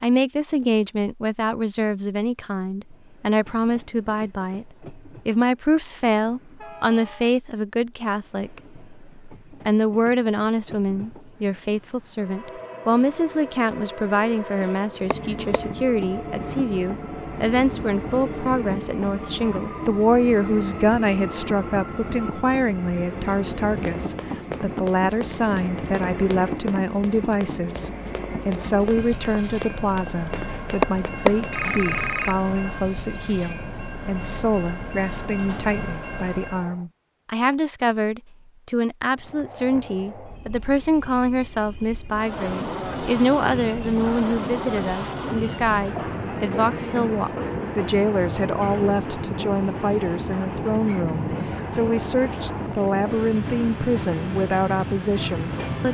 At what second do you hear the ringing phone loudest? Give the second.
31 s.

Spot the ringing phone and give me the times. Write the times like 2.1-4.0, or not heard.
14.6-15.6, 30.3-32.4.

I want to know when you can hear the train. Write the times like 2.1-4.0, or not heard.
2.8-36.9, 39.1-55.8.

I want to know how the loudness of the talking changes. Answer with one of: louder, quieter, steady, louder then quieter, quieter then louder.
steady.